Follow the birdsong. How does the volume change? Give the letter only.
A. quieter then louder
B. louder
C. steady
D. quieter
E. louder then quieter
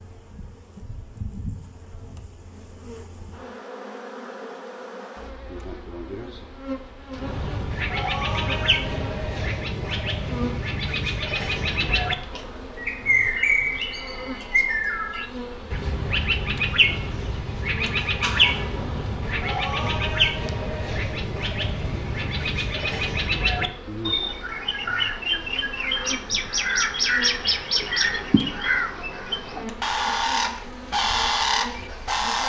C.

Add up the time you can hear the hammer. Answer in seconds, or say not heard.
not heard.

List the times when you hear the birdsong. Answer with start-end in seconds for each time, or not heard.
7.1-32.4.